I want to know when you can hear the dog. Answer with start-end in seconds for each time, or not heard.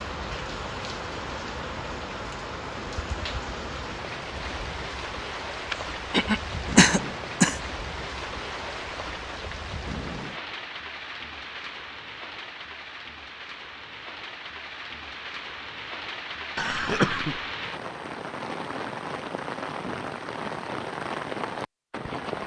not heard.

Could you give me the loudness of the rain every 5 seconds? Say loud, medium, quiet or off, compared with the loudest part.
loud, loud, medium, loud, loud.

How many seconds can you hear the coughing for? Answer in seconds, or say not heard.
3 s.